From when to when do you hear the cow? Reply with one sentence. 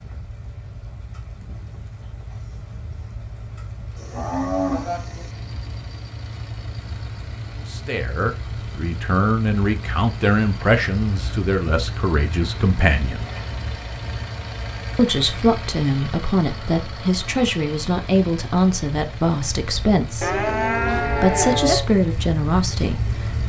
You can hear the cow from 4.0 to 5.3 s and from 20.2 to 21.9 s.